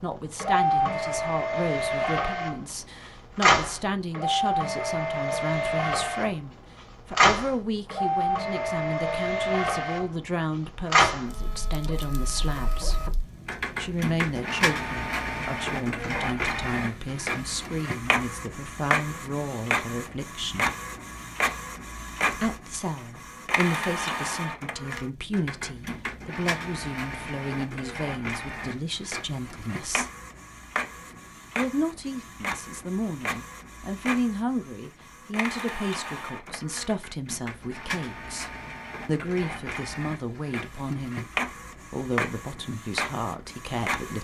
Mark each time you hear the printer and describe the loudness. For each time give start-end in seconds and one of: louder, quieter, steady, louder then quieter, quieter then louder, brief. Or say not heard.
0.0-44.1 quieter.